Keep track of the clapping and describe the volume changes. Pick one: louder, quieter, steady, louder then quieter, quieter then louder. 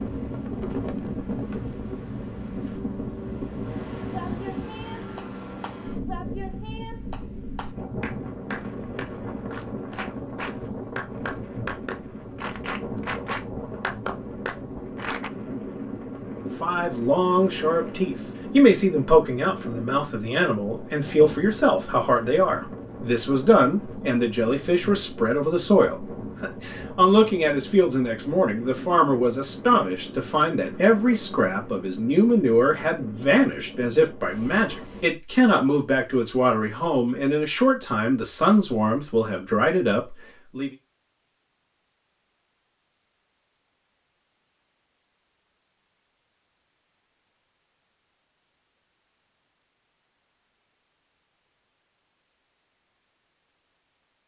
louder.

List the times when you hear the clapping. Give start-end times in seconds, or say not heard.
4.1-15.3.